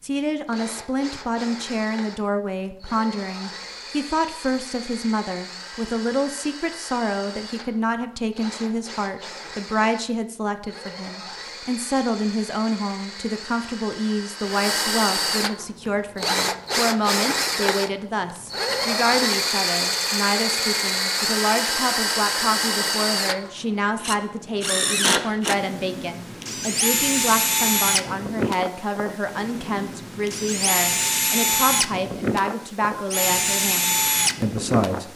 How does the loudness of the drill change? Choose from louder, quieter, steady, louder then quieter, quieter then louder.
louder.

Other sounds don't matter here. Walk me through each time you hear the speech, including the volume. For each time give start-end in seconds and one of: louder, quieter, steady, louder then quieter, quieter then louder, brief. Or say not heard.
0.0-35.1 steady.